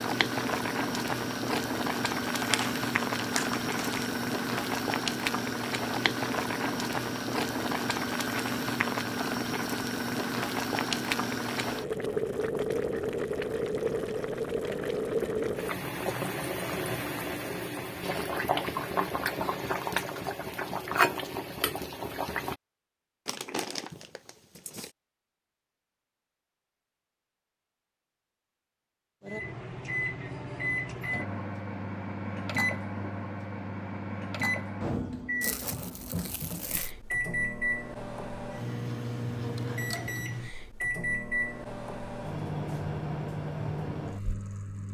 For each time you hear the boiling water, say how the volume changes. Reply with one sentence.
The boiling water can be heard from 0.0 to 22.6 s, at a steady volume.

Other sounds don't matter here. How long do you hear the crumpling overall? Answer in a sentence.
You can hear the crumpling for 5 seconds altogether.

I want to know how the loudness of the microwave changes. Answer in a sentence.
The loudness of the microwave stays about the same.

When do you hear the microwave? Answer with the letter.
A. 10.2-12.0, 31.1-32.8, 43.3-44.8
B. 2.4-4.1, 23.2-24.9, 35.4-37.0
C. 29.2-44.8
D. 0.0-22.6
C.